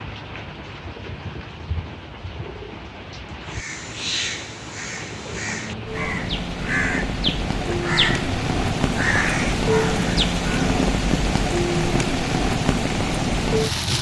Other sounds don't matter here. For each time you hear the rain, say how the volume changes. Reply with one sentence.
You can hear the rain from 0.0 to 13.9 s, getting louder.